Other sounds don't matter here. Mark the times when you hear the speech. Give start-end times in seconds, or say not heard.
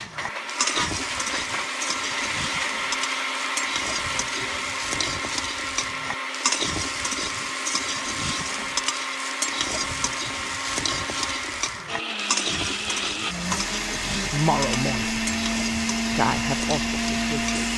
13.9-15.2, 16.1-17.7.